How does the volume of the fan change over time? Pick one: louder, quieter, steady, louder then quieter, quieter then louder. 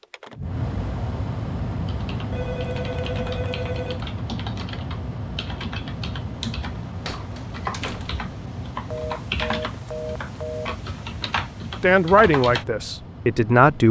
quieter.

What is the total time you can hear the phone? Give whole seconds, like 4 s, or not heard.
4 s.